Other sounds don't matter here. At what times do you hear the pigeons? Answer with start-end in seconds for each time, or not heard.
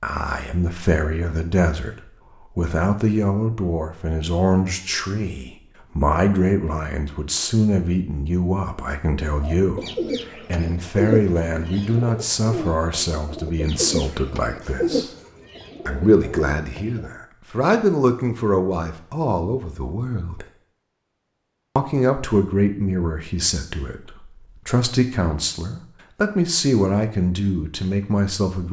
9.4-17.2.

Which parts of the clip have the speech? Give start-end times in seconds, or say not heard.
0.0-1.9, 2.5-15.1, 15.8-20.4, 21.8-28.6.